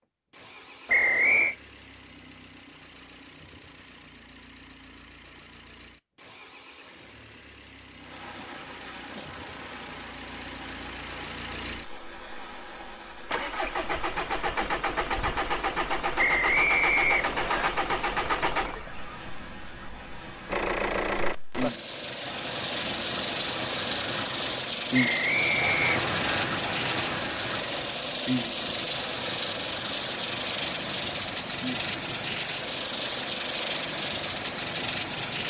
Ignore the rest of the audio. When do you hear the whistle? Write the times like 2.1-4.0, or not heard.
0.8-1.6, 16.1-17.7, 24.9-26.4.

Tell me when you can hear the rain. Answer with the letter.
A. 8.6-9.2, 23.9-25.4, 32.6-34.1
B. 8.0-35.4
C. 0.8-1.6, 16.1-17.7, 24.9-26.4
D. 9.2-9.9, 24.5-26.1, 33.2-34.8
B.